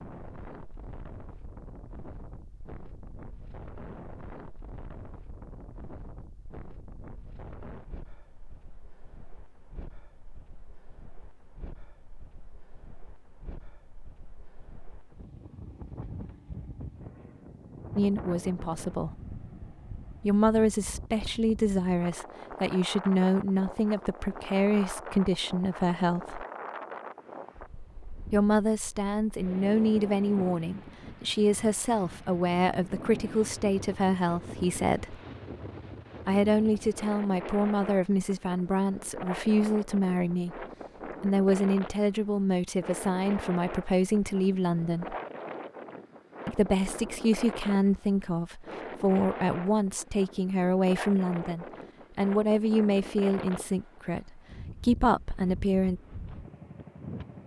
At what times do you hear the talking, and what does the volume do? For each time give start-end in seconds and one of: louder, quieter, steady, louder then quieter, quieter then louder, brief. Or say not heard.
17.9-19.1 brief
20.2-26.4 steady
28.3-35.2 steady
36.2-45.1 steady
46.5-56.0 steady.